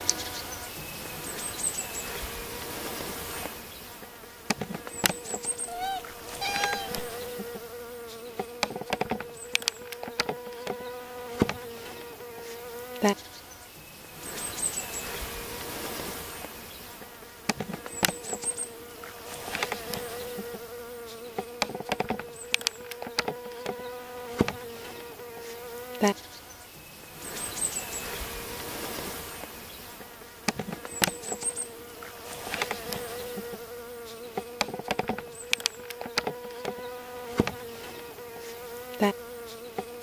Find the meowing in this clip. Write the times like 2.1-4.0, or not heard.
5.7-7.0.